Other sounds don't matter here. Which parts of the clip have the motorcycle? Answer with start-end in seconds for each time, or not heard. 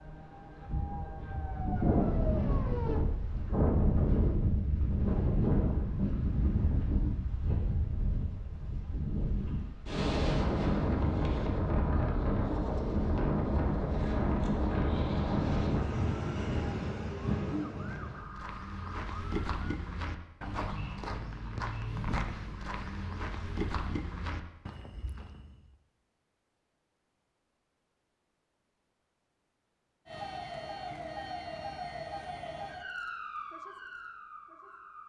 not heard.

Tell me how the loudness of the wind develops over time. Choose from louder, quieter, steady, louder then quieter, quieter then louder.
steady.